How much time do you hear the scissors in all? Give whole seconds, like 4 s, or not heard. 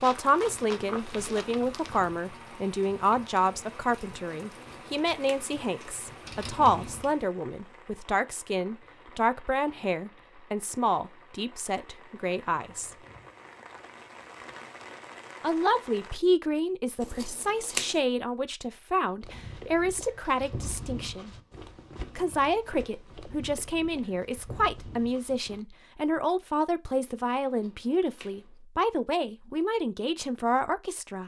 3 s.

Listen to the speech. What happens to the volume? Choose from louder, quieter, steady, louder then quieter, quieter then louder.
steady.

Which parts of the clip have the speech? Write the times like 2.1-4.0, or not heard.
0.0-12.9, 15.4-21.3, 22.1-31.2.